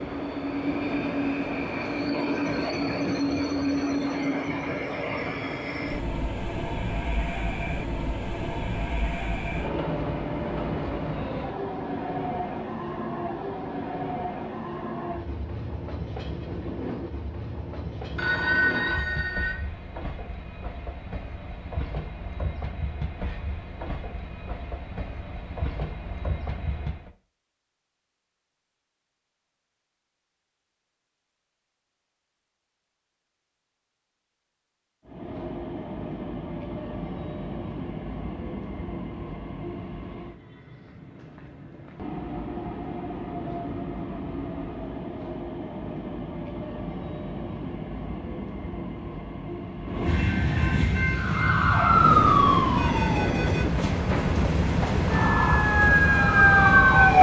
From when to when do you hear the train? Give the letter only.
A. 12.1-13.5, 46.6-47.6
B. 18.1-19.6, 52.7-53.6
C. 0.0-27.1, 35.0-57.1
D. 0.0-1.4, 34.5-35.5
C.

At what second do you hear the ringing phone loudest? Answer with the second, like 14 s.
19 s.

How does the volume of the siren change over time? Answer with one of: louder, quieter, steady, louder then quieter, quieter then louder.
quieter then louder.